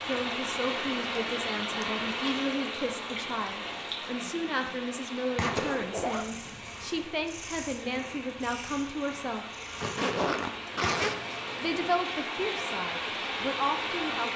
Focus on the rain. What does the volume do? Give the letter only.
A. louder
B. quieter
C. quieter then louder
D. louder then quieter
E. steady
C.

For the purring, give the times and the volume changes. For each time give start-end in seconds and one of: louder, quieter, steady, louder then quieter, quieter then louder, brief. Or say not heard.
5.3-11.9 louder.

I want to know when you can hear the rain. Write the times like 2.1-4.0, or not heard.
0.0-14.3.